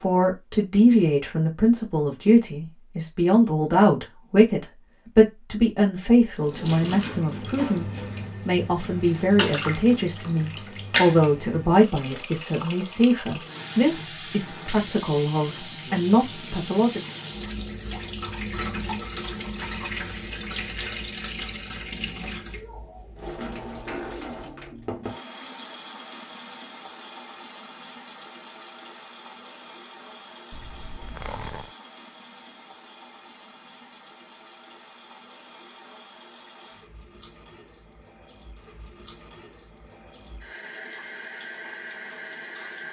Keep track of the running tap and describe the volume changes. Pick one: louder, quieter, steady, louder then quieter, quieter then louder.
quieter.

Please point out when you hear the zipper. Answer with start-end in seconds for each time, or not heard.
30.5-31.8.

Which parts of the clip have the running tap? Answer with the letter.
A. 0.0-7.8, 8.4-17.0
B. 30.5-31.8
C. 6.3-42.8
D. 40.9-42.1
C.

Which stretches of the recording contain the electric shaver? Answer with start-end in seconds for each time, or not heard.
not heard.